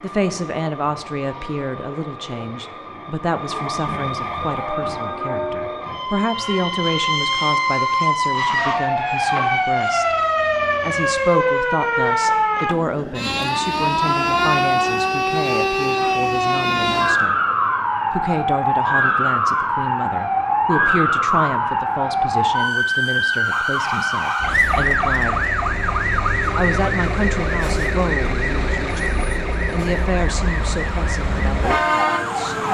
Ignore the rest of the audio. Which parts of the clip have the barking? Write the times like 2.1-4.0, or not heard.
not heard.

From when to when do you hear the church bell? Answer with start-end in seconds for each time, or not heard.
4.4-8.1.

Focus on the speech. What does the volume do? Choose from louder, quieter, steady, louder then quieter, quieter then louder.
steady.